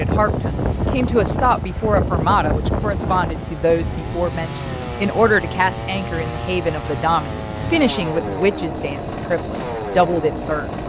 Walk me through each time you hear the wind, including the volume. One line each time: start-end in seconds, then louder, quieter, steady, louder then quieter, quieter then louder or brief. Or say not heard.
0.0-10.8 quieter.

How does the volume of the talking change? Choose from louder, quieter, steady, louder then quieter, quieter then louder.
steady.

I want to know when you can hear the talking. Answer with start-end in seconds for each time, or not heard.
0.0-10.7.